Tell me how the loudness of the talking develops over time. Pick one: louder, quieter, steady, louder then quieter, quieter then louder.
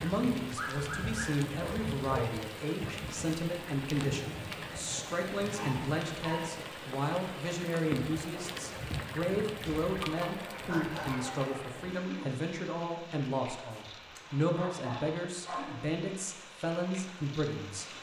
steady.